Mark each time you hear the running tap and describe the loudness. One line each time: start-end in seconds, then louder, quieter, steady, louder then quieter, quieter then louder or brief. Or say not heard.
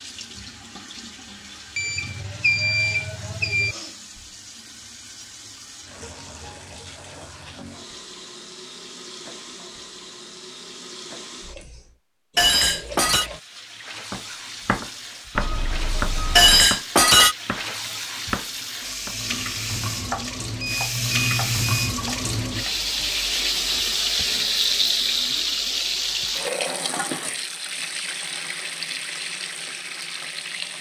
0.0-30.7 louder.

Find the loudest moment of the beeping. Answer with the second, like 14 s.
3 s.